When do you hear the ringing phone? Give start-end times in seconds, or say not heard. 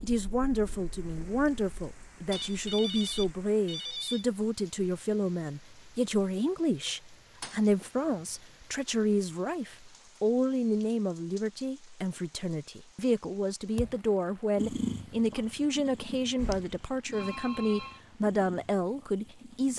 2.3-4.2, 17.1-18.0.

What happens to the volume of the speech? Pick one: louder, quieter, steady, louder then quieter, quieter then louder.
steady.